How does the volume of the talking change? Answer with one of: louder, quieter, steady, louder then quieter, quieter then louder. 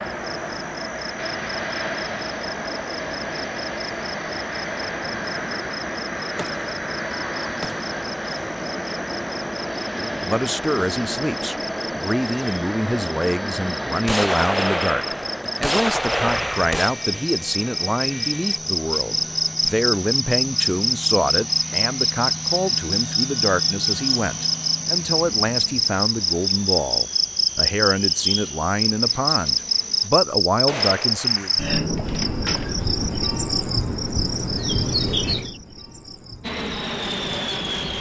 steady.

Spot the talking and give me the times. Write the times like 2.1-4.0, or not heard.
10.2-31.5.